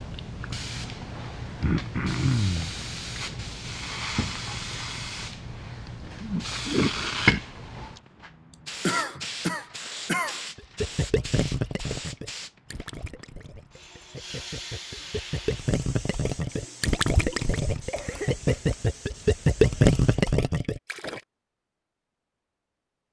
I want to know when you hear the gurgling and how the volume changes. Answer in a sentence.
You can hear the gurgling from 10.6 to 21.2 s, getting quieter then louder.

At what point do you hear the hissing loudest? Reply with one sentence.
The volume of the hissing peaks at 7 seconds.